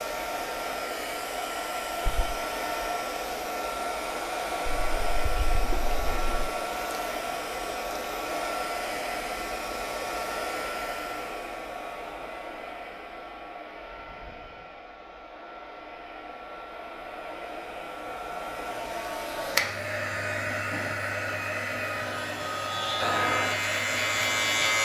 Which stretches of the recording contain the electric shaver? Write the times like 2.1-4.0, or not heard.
22.1-24.8.